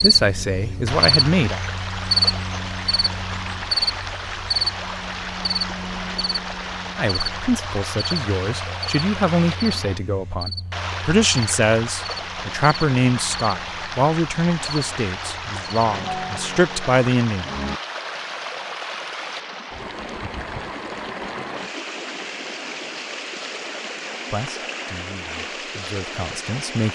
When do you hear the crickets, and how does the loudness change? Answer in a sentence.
The crickets can be heard from 0.0 to 17.8 s, getting quieter.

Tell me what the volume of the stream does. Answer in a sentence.
The volume of the stream stays about the same.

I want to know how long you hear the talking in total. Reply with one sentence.
The talking can be heard for 15 seconds in total.